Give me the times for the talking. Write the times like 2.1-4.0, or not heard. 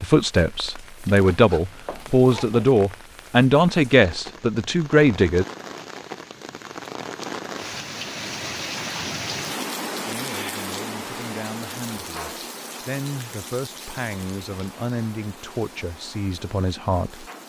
0.0-5.5, 10.1-17.2.